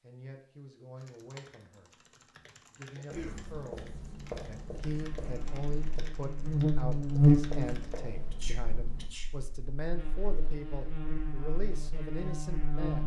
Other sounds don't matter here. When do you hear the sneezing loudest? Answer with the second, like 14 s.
3 s.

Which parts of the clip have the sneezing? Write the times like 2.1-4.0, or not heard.
2.9-3.5, 8.3-9.3.